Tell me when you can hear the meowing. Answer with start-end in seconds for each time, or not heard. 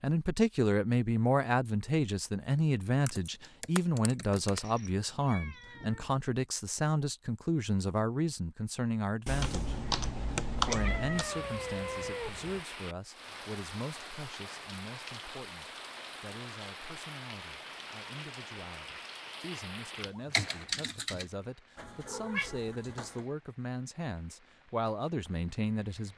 4.5-6.1, 10.6-12.6, 21.8-23.2.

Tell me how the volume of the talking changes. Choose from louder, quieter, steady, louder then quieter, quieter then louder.
quieter then louder.